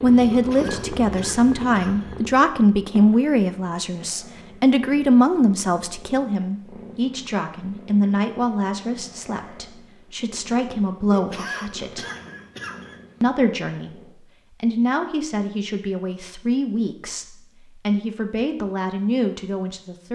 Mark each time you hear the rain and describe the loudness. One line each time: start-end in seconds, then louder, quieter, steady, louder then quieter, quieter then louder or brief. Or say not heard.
not heard.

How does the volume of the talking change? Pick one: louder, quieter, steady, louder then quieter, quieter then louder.
quieter.